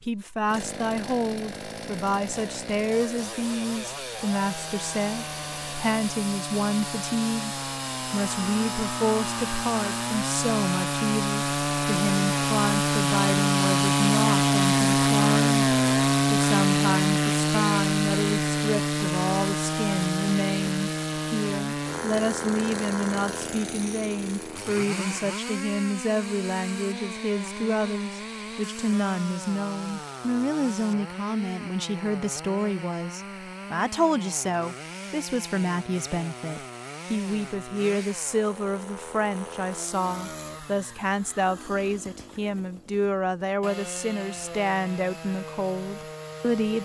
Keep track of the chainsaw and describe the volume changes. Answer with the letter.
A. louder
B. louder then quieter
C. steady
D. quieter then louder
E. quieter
B.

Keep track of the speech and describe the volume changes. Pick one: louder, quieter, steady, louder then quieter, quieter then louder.
steady.